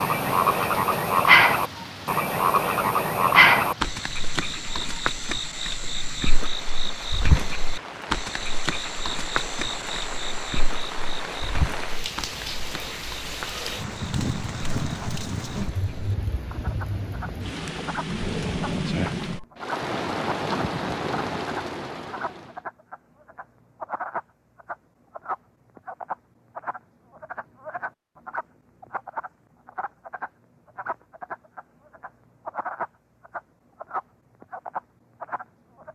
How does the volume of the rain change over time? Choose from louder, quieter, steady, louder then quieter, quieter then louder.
louder.